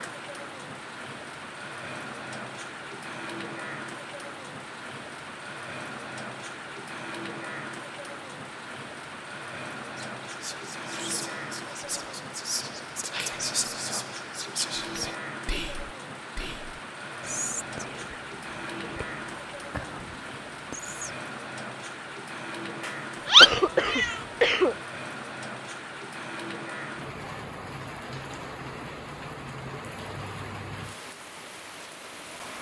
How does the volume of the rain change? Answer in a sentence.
The volume of the rain stays about the same.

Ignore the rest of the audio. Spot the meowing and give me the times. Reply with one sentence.
The meowing can be heard from 22.9 to 24.1 s.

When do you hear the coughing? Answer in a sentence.
The coughing can be heard from 23.4 to 24.8 s.